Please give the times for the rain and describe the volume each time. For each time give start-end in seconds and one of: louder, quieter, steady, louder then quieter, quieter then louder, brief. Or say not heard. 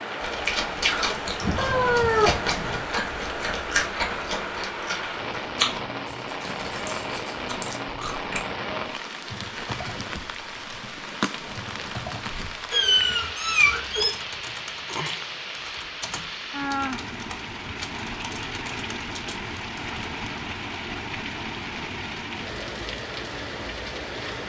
0.0-24.4 steady.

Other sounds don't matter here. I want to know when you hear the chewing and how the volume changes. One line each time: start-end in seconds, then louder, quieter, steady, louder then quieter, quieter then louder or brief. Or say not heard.
0.2-8.4 quieter.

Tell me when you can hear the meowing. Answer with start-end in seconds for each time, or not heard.
1.4-2.9, 12.7-14.2.